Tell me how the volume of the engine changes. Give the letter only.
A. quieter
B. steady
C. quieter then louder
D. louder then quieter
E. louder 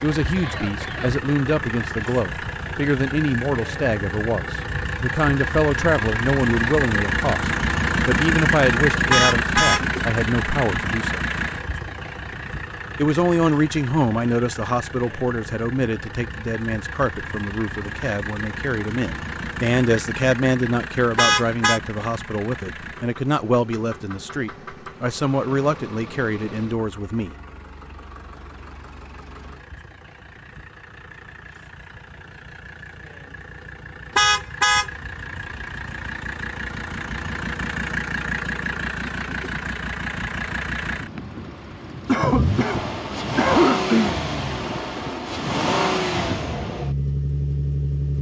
C.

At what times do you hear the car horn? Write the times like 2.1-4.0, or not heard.
9.1-9.8, 21.1-21.8, 34.1-34.9.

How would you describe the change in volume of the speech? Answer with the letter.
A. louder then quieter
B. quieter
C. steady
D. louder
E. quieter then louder
C.